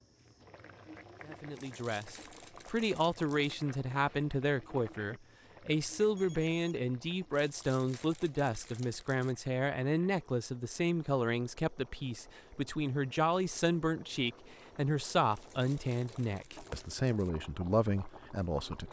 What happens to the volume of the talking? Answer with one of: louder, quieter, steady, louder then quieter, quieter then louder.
steady.